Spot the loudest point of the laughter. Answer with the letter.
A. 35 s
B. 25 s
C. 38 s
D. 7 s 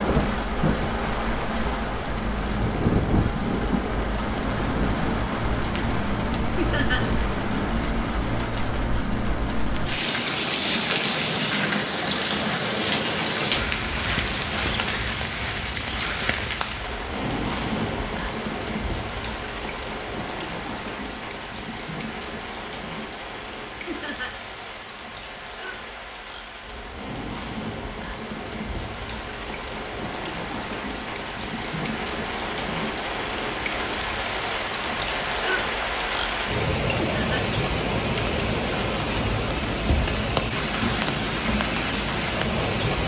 D.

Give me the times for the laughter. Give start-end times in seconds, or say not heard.
6.5-7.0, 23.9-24.3, 37.0-37.4.